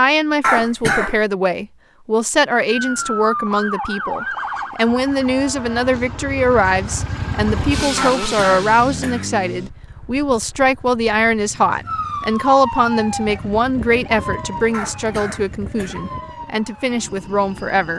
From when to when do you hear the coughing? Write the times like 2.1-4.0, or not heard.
0.4-1.2, 8.0-9.3, 14.7-16.1.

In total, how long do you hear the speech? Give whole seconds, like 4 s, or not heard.
18 s.